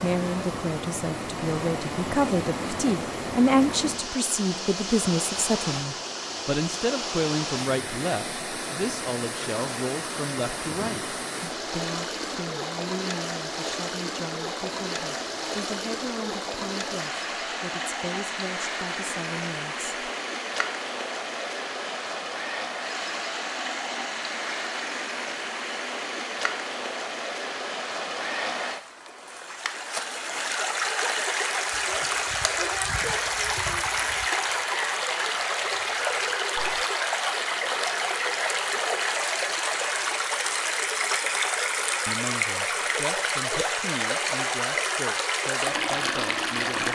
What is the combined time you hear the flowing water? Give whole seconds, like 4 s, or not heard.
47 s.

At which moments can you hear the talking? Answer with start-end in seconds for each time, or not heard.
0.0-19.9, 42.0-46.9.